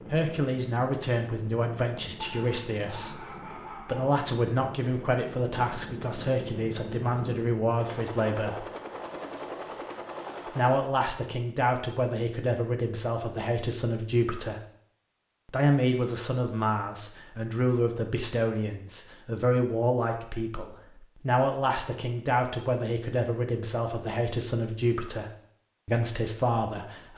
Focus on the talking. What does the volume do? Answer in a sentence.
The volume of the talking stays about the same.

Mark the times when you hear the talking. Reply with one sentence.
You can hear the talking from 0.1 to 8.7 s, from 10.6 to 14.6 s and from 15.4 to 27.1 s.